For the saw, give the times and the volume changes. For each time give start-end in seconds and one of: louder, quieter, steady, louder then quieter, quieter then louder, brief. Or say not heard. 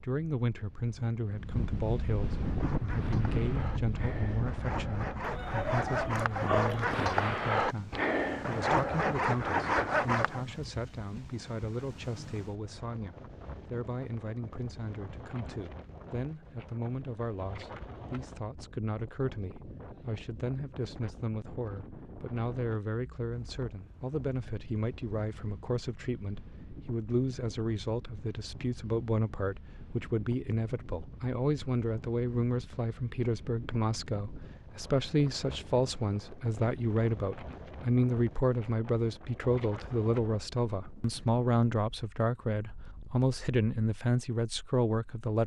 2.3-10.4 louder.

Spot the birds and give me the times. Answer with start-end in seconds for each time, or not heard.
not heard.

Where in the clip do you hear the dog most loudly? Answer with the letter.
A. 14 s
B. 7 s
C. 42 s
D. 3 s
B.